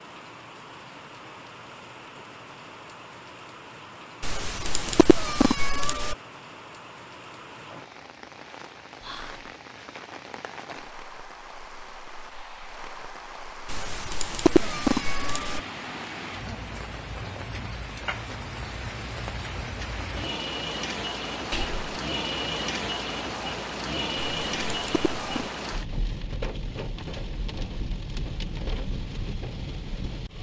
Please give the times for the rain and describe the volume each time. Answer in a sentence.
You can hear the rain from 0.0 to 30.3 s, getting louder.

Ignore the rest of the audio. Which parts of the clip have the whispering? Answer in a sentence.
The whispering can be heard from 9.0 to 9.5 s and from 21.5 to 22.0 s.